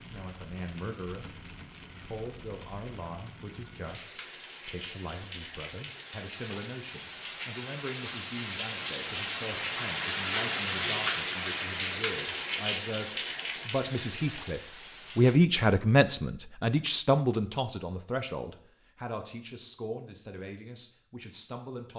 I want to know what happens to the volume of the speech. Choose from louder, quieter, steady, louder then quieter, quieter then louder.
louder then quieter.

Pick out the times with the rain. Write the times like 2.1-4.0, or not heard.
0.0-15.4.